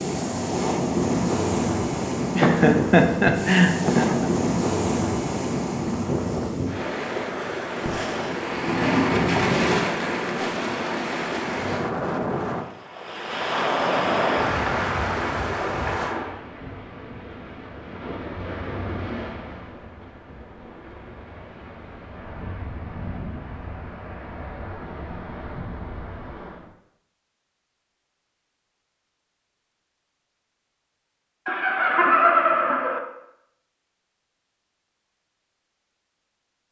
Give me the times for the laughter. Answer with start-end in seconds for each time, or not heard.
2.4-4.3, 31.4-33.0.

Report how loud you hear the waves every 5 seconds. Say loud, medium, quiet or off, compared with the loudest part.
loud, loud, loud, medium, quiet, quiet, off, off.